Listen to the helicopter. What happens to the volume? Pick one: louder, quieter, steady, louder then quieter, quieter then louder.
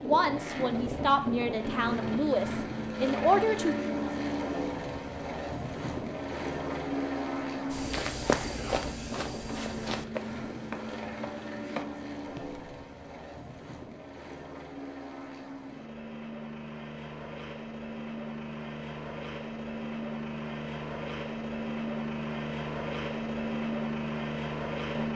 quieter then louder.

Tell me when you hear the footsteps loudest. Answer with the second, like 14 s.
8 s.